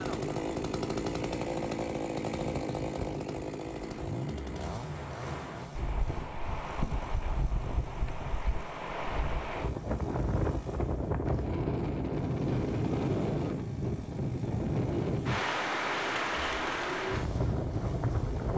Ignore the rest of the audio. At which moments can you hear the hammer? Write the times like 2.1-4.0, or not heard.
not heard.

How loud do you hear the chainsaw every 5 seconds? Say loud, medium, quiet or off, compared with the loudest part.
loud, quiet, quiet, quiet.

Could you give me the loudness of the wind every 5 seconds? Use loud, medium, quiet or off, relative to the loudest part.
medium, medium, loud, loud.